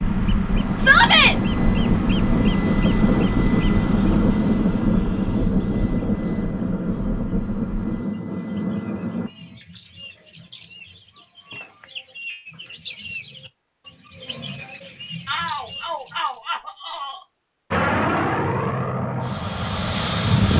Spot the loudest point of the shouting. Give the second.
1 s.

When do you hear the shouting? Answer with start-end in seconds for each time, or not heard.
0.8-1.4, 15.2-17.2.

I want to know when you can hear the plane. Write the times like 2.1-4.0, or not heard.
0.0-9.6, 17.7-20.5.